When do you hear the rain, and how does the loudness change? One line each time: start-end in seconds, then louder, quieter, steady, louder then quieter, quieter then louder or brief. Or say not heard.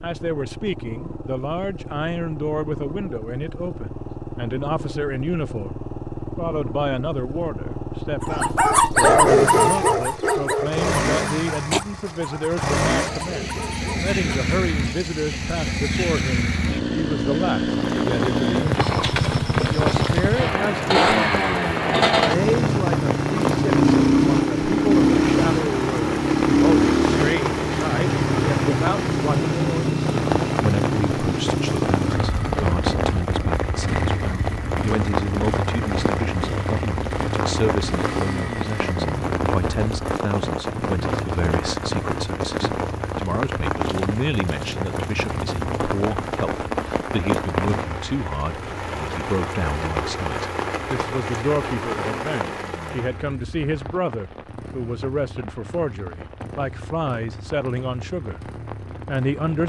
17.6-59.6 quieter.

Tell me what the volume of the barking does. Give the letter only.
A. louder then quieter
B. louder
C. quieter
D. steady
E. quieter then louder
C.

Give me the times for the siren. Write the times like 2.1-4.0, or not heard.
not heard.